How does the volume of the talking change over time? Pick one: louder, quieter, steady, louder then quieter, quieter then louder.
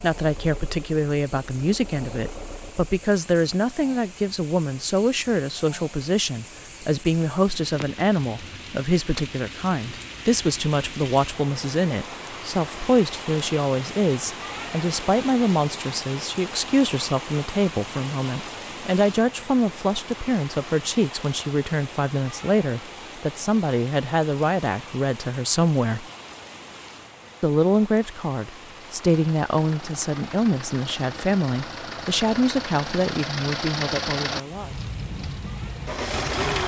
steady.